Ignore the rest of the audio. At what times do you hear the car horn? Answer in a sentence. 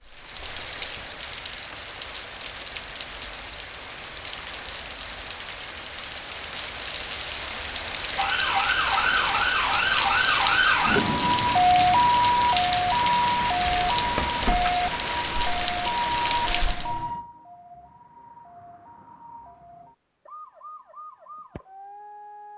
The car horn can't be heard in this clip.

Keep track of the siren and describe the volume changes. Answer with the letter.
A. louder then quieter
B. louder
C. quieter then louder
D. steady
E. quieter
E.